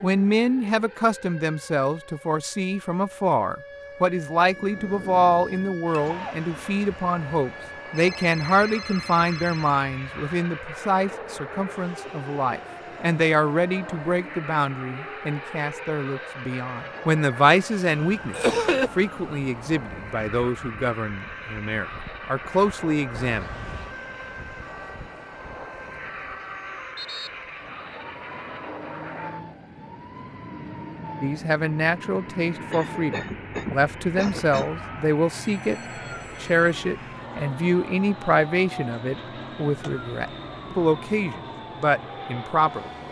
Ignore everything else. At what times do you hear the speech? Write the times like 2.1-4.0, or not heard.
0.0-23.4, 31.2-35.8, 36.4-42.9.